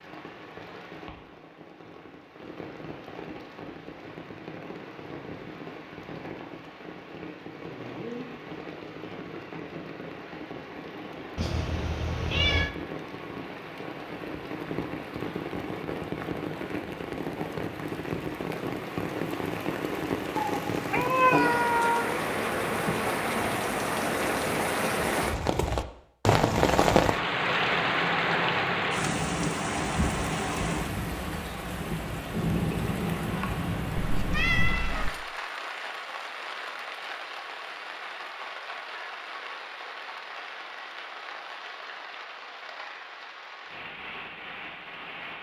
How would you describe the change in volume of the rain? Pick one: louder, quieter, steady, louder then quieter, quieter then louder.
louder then quieter.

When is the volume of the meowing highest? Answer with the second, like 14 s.
21 s.